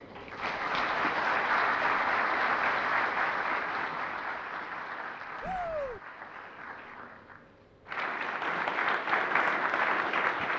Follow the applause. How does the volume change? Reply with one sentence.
The loudness of the applause goes down, then up.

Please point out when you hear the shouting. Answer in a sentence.
You can hear the shouting from 5.4 to 6.0 s.